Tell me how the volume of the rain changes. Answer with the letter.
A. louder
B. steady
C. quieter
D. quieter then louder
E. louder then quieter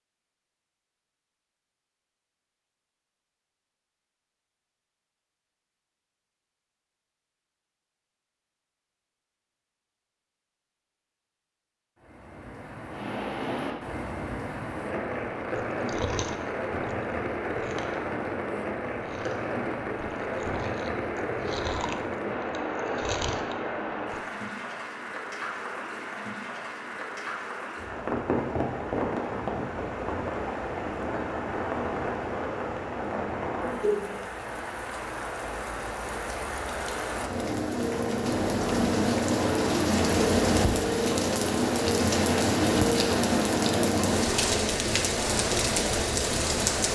A.